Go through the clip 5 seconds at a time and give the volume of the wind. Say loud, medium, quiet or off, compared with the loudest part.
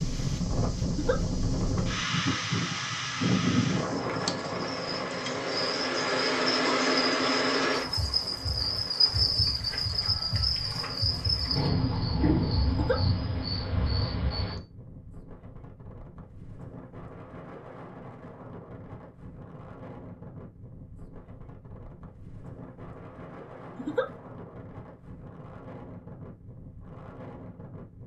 loud, quiet, quiet, quiet, quiet, quiet.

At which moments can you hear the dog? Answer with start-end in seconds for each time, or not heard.
not heard.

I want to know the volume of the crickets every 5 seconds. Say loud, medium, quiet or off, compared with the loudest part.
quiet, loud, loud, off, off, off.